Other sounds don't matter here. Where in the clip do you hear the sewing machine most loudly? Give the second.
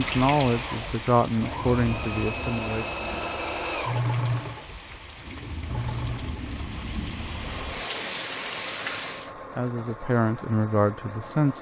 4 s.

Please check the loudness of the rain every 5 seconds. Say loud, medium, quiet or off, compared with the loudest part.
loud, loud, off.